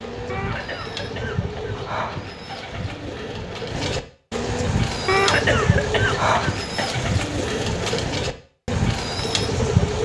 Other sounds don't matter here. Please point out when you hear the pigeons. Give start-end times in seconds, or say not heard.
0.0-10.0.